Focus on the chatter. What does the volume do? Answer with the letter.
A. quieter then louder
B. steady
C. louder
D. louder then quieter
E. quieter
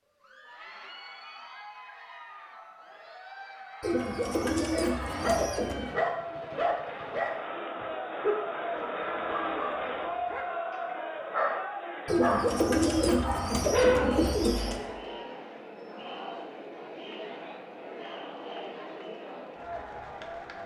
D.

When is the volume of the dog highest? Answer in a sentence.
The volume of the dog peaks at 14 seconds.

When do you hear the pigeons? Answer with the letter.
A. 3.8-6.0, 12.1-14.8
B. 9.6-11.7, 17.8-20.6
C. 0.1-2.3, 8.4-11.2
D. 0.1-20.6
A.